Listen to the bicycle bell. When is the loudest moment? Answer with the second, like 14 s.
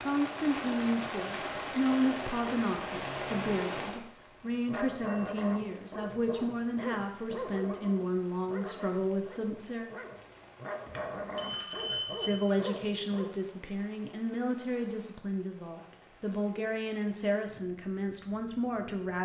12 s.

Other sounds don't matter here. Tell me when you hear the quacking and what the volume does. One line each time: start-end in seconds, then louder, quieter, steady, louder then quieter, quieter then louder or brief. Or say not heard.
not heard.